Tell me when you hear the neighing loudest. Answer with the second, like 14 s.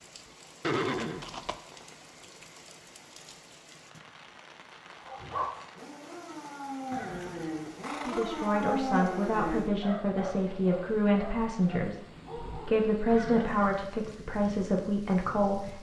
1 s.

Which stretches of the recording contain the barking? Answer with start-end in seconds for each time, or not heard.
5.0-12.8.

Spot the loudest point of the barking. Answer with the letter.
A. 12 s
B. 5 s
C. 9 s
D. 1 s
C.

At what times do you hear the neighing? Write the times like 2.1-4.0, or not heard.
0.6-1.6, 6.9-8.4, 13.1-13.8.